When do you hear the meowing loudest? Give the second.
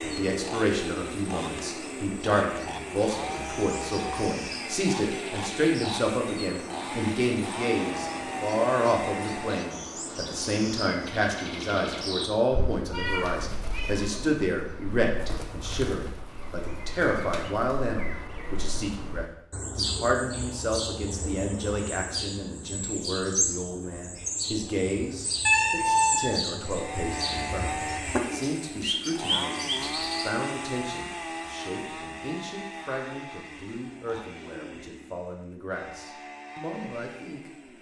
26 s.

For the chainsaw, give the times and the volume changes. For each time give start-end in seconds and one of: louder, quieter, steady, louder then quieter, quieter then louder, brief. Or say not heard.
0.0-9.8 steady
26.6-37.7 quieter.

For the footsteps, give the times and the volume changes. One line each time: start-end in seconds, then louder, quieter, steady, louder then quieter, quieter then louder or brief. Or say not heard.
not heard.